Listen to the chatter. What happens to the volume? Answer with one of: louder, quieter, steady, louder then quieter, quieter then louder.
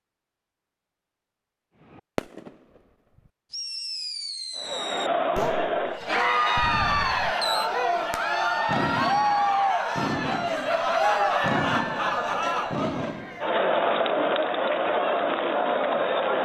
steady.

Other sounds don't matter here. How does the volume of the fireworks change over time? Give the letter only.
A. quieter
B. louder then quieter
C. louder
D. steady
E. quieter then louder
D.